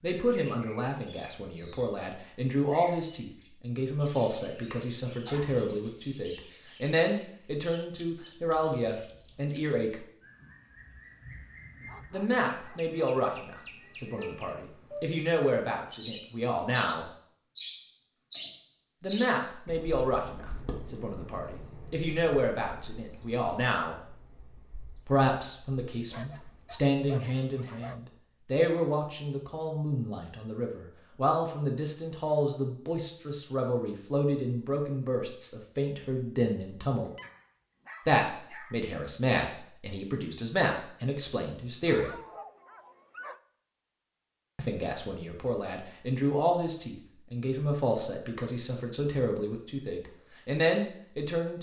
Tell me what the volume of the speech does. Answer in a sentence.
The volume of the speech stays about the same.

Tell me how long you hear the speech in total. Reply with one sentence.
The speech can be heard for 43 seconds in total.